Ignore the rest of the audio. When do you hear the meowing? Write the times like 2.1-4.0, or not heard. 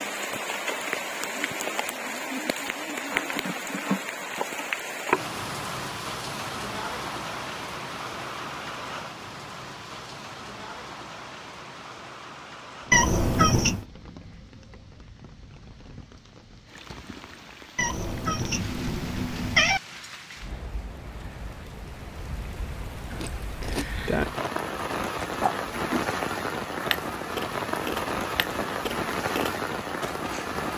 12.9-13.8, 17.8-19.8.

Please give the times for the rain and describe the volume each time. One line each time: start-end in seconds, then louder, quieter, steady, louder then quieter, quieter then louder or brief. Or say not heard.
0.0-30.7 quieter then louder.